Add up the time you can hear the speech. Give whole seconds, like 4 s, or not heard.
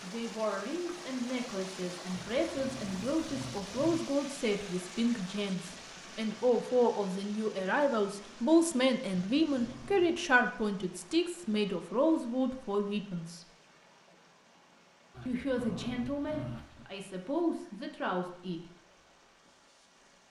17 s.